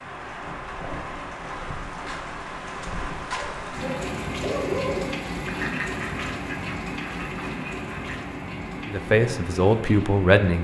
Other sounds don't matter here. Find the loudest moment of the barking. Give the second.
5 s.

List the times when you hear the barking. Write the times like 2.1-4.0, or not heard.
3.4-5.2.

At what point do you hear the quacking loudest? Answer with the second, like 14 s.
6 s.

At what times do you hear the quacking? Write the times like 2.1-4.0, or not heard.
5.5-8.2.